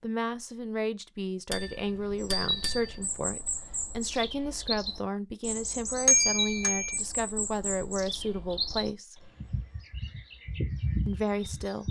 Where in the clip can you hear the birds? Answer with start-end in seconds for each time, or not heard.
2.1-11.8.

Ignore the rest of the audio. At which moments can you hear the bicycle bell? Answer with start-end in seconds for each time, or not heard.
1.5-3.0, 6.0-7.0.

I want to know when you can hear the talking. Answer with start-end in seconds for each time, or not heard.
0.0-9.3, 11.1-11.8.